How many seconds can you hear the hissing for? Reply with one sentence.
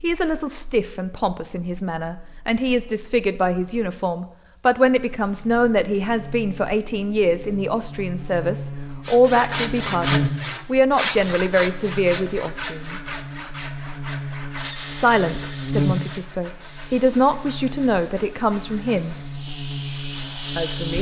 You can hear the hissing for 6 seconds altogether.